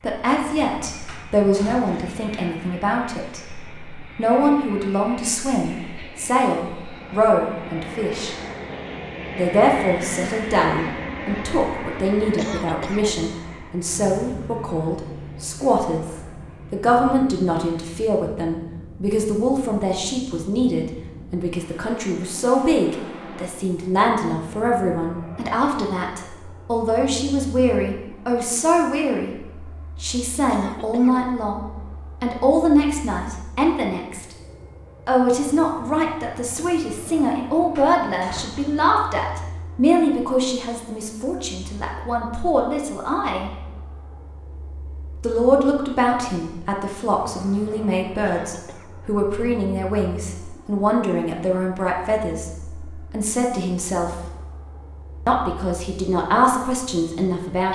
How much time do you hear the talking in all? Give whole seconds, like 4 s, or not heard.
53 s.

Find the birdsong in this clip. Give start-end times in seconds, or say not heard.
not heard.